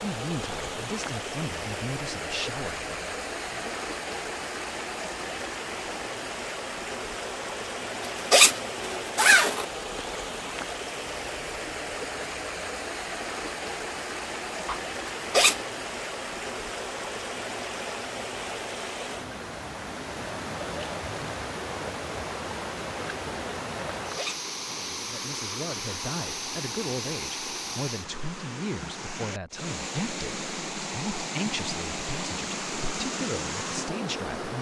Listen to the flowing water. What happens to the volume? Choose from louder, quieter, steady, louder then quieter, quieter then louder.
steady.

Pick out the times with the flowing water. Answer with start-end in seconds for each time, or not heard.
0.0-34.5.